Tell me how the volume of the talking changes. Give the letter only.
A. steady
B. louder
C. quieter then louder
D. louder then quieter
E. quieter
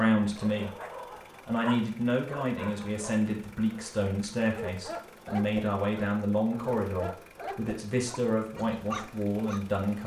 A.